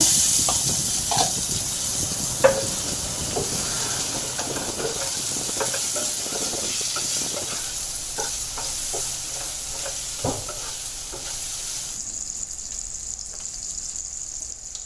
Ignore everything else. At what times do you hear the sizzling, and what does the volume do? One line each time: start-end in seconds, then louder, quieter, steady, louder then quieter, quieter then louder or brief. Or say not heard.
0.0-14.8 quieter.